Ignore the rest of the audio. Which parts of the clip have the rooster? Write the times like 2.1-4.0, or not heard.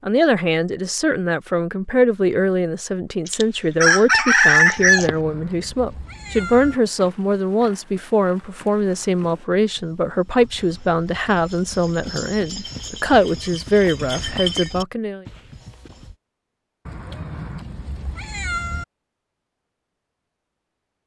3.2-5.2.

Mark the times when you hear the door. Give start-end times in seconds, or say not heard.
not heard.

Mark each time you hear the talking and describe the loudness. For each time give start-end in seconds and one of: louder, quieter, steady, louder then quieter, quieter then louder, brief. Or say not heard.
0.0-15.2 steady.